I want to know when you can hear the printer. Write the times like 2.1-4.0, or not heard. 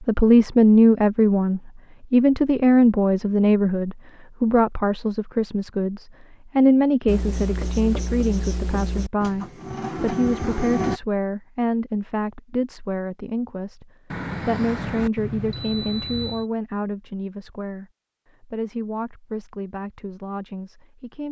9.2-11.0.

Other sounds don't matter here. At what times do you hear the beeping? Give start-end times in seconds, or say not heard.
14.1-16.4.